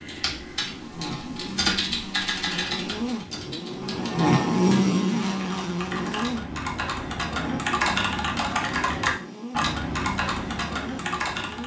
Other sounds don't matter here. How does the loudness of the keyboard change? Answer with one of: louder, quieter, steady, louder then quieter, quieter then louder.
quieter then louder.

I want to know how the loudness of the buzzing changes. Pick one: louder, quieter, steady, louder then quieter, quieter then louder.
louder then quieter.